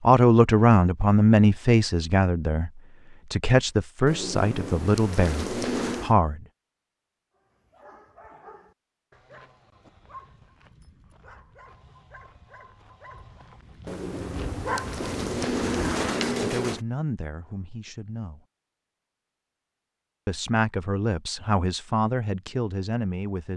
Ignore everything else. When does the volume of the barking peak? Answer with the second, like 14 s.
15 s.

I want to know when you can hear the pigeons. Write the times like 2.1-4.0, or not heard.
4.0-6.2, 13.8-16.9.